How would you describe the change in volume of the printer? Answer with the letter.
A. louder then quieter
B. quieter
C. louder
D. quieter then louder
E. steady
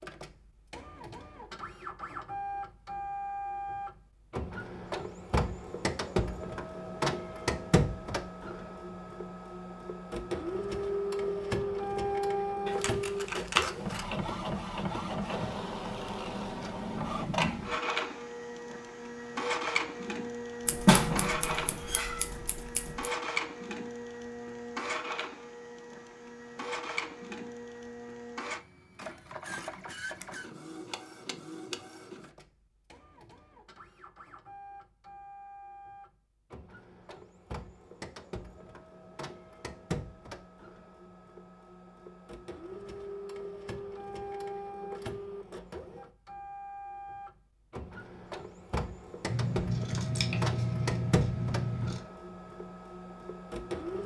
D.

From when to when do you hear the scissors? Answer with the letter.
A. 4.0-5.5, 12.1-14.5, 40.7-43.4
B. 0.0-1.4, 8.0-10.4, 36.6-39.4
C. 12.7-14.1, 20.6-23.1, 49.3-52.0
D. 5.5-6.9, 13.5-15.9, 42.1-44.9
C.